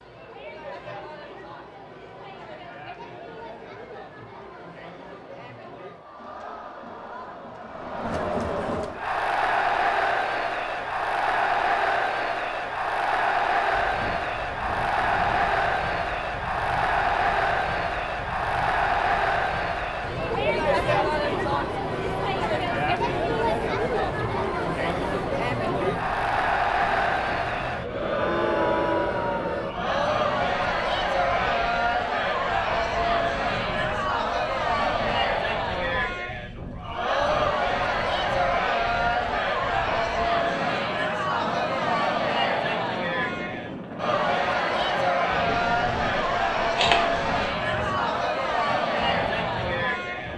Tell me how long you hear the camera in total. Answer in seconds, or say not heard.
2 s.